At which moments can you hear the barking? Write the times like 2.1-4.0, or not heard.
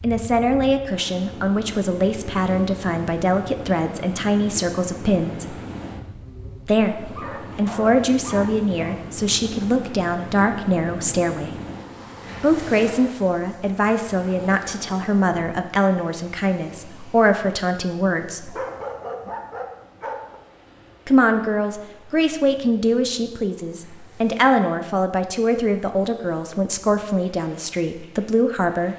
7.0-9.0, 18.4-20.4.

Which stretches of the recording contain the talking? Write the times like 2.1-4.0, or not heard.
0.0-5.6, 6.7-11.6, 12.4-18.6, 21.1-28.9.